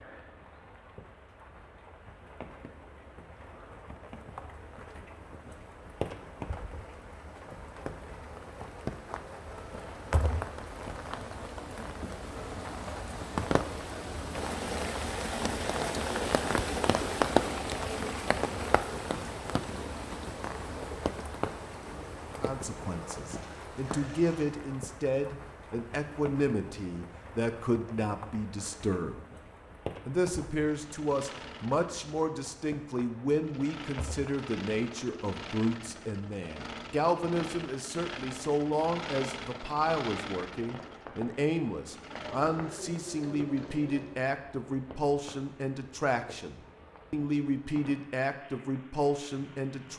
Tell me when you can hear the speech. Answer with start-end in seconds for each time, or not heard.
22.4-29.2, 30.1-49.9.